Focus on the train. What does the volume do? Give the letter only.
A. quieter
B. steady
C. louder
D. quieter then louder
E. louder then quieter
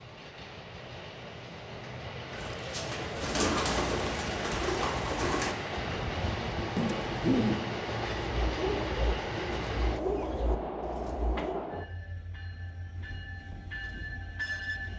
E.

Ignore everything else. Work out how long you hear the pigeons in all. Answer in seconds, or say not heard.
9 s.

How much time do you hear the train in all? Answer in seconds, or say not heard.
15 s.